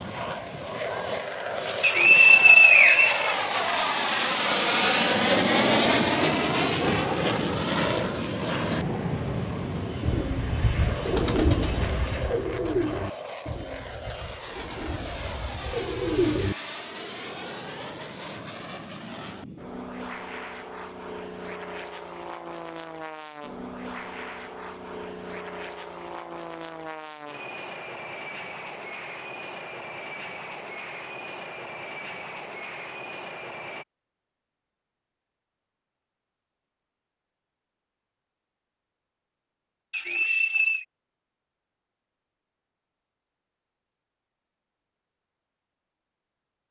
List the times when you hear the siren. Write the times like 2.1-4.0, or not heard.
not heard.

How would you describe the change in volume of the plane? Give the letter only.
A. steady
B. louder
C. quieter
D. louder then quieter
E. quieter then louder
C.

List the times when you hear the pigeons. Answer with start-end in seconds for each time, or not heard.
10.0-16.6.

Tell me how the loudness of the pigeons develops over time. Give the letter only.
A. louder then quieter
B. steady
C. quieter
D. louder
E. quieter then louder
E.